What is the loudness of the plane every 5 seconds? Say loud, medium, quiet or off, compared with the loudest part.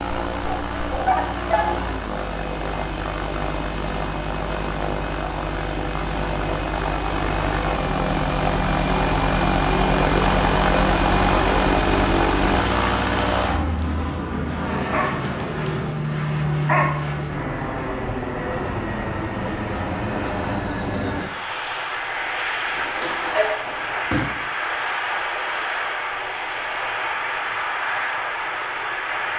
medium, loud, loud, medium, medium, medium.